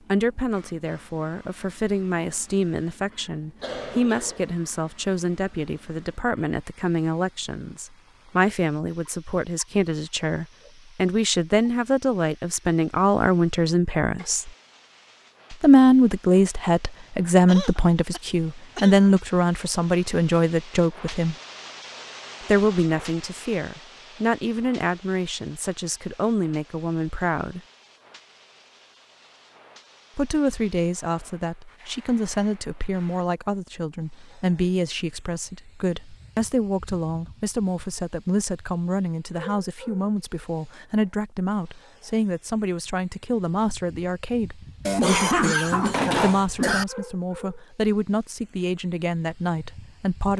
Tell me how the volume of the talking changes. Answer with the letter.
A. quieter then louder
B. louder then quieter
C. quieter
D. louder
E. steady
B.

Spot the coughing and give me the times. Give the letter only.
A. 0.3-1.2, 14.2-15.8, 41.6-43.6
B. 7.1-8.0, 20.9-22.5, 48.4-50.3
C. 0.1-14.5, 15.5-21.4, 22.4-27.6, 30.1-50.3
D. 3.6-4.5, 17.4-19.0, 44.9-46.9
D.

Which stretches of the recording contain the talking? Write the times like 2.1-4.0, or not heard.
0.1-14.5, 15.5-21.4, 22.4-27.6, 30.1-50.3.